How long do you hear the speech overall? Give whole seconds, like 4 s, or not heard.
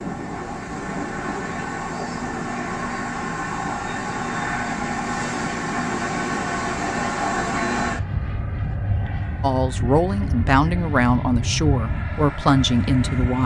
4 s.